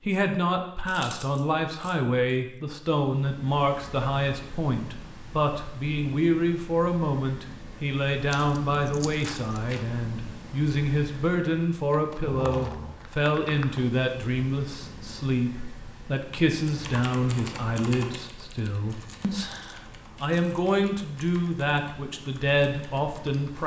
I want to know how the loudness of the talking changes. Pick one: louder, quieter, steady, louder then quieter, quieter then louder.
steady.